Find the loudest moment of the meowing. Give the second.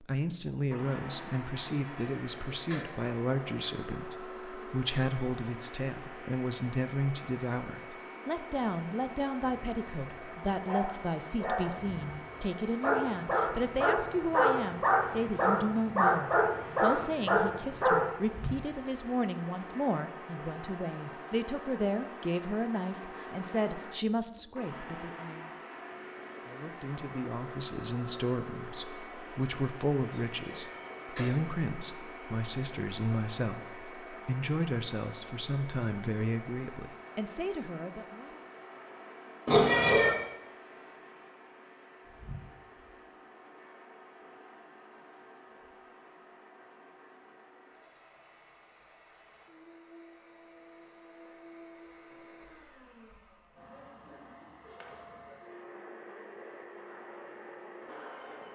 40 s.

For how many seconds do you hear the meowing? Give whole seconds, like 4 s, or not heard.
3 s.